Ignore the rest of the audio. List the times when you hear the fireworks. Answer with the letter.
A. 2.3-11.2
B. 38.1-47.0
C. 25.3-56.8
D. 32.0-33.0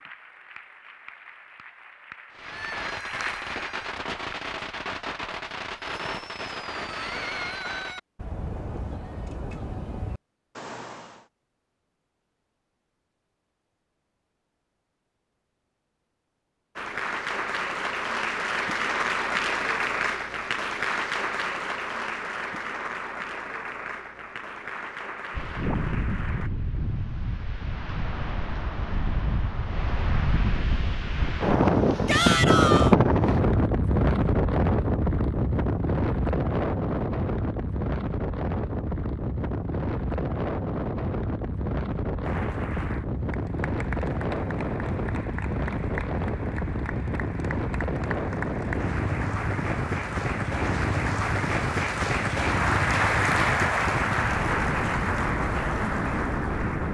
A.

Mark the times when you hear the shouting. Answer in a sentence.
You can hear the shouting from 32.0 to 33.0 s.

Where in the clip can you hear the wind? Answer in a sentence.
You can hear the wind from 25.3 to 56.8 s.